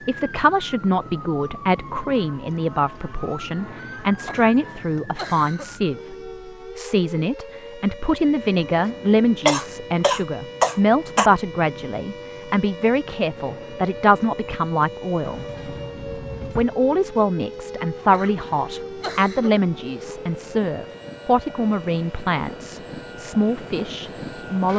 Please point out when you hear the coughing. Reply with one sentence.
You can hear the coughing from 4.0 to 5.8 s, from 9.4 to 11.3 s and from 17.9 to 19.6 s.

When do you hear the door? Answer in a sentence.
You can hear the door from 15.2 to 16.7 s.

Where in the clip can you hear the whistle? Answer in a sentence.
You can't hear the whistle here.